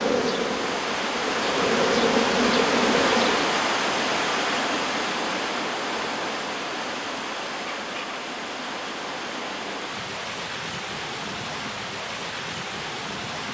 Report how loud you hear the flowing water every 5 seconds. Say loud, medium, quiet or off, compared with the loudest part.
loud, medium, medium.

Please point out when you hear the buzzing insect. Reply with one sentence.
You can hear the buzzing insect from 0.0 to 3.6 s.